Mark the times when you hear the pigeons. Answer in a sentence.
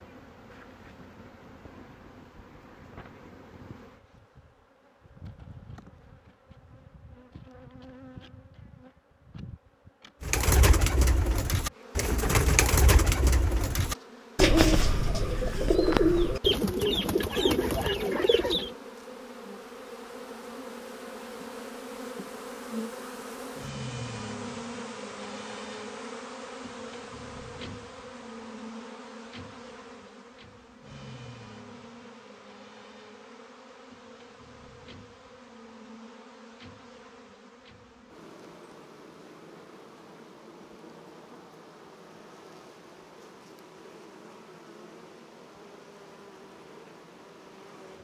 You can hear the pigeons from 10.2 to 18.8 s.